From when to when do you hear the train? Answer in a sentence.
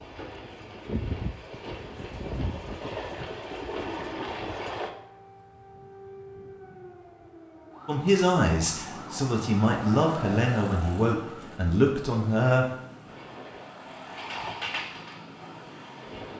The train can be heard from 0.0 to 4.9 s and from 13.1 to 16.3 s.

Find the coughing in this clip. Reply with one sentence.
The coughing can't be heard in this clip.